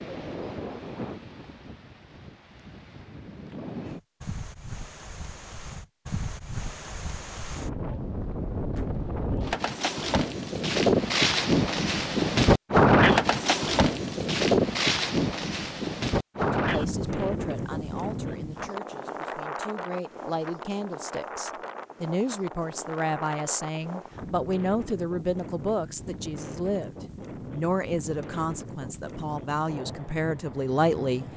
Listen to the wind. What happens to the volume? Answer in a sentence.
The volume of the wind goes up, then down.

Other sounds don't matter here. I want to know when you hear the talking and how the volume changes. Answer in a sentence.
You can hear the talking from 16.6 to 31.2 s, getting louder.